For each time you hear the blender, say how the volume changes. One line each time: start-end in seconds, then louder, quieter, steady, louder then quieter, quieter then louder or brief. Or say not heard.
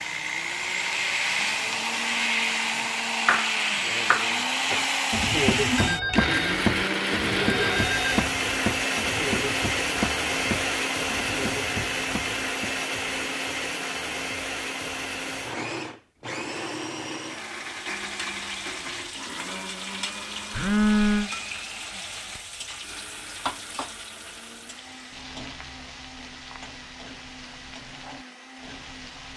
0.0-29.3 quieter.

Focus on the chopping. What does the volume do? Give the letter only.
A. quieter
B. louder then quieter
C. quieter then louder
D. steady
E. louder
A.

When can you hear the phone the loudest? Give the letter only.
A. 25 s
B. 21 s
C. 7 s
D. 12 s
B.